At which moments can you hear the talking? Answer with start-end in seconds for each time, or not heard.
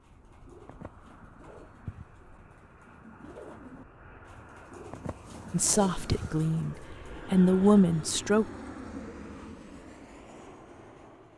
5.5-8.4.